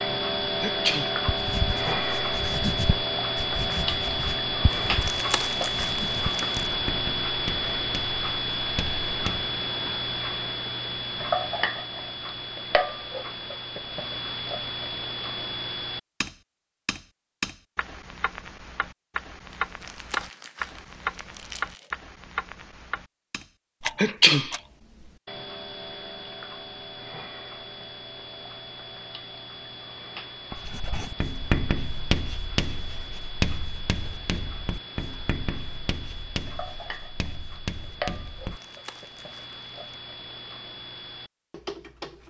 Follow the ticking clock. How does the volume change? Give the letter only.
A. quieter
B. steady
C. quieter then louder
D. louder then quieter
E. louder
A.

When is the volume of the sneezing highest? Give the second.
24 s.